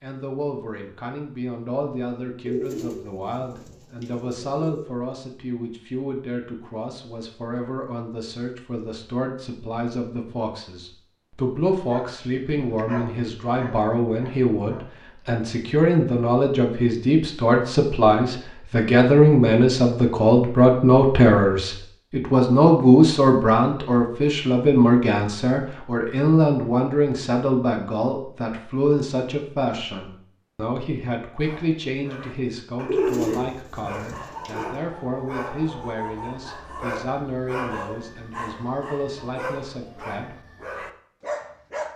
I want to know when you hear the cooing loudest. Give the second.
33 s.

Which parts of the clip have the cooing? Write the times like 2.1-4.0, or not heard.
2.5-4.8, 32.9-34.8.